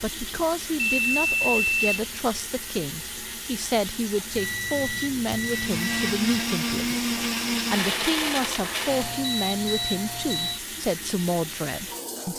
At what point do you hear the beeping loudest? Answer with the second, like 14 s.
2 s.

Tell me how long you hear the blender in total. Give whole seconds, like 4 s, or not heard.
4 s.